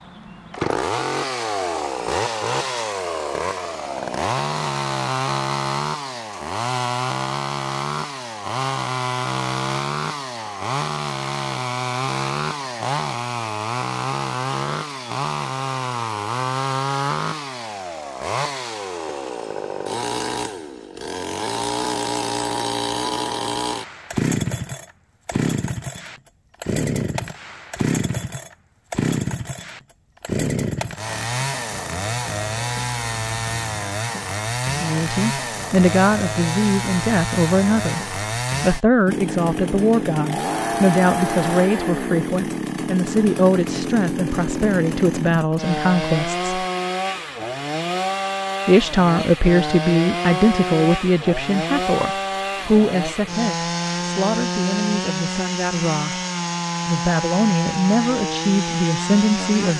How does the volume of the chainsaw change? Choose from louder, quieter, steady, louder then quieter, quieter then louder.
steady.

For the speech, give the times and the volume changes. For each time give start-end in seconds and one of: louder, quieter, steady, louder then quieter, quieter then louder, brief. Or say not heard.
34.8-46.5 steady
48.6-56.2 quieter
56.9-59.7 brief.